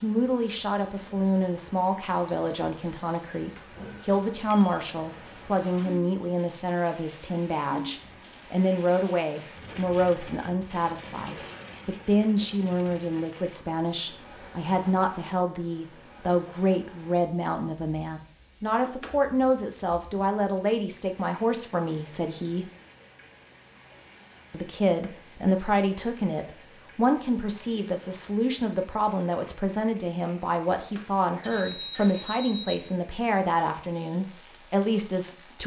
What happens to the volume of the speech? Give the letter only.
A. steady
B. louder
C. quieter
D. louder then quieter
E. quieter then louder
A.